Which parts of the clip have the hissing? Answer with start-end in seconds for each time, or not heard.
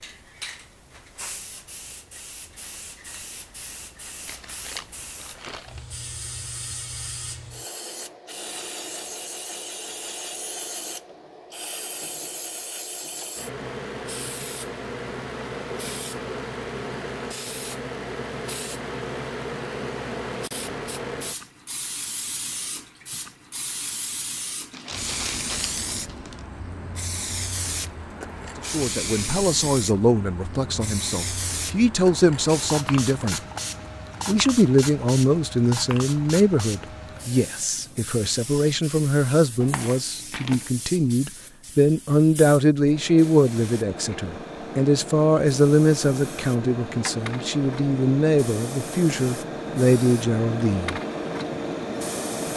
0.0-52.5.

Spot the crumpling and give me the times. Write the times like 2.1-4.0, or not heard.
4.2-5.8, 24.7-26.4, 39.6-40.7.